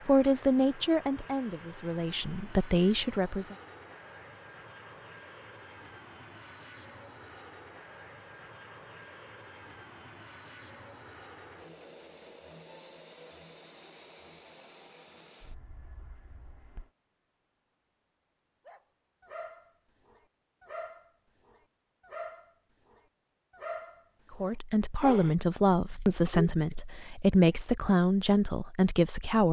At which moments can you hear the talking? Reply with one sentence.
The talking can be heard from 0.1 to 3.5 s and from 24.3 to 29.4 s.